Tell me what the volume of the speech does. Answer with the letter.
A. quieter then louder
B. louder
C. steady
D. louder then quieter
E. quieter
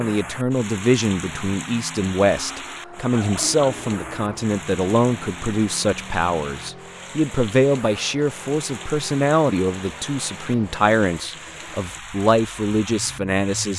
C.